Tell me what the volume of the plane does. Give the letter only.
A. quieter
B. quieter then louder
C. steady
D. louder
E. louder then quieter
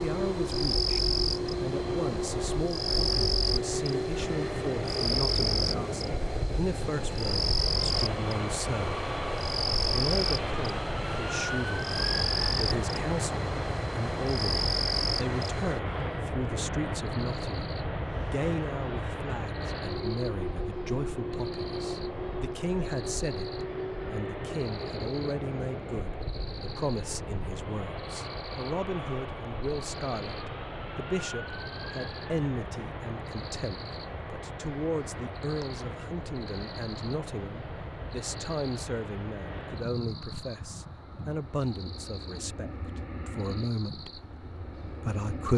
A.